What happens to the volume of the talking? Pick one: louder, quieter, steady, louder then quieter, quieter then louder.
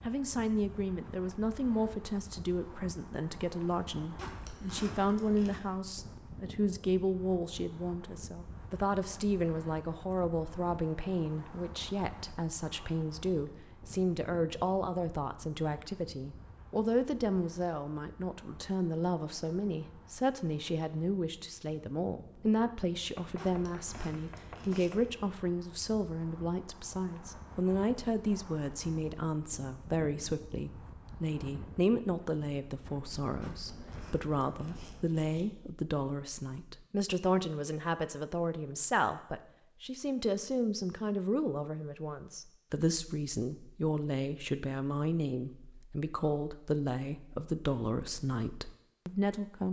steady.